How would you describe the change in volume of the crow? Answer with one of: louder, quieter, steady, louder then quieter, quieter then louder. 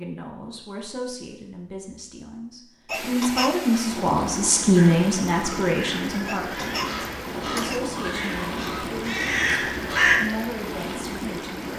louder.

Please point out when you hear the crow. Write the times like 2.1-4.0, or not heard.
4.8-10.2.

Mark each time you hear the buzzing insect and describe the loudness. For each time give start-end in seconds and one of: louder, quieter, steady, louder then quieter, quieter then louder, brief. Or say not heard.
not heard.